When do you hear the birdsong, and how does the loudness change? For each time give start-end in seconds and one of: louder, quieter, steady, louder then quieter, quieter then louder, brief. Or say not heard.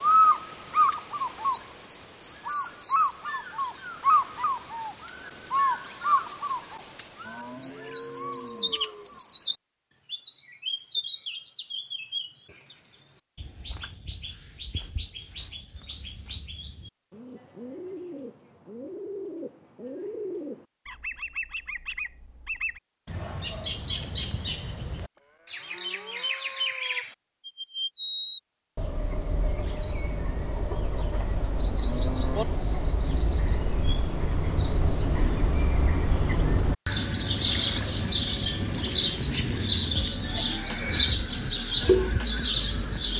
0.0-43.1 quieter then louder.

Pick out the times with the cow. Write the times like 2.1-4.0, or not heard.
7.2-9.2, 25.1-27.1, 31.2-32.5.